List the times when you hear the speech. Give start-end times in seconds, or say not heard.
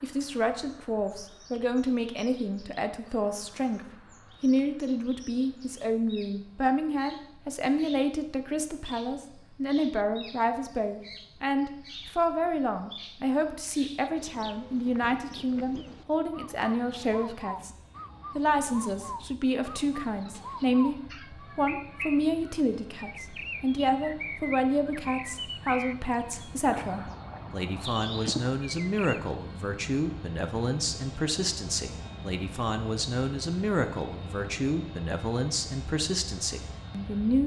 0.0-17.8, 18.4-37.4.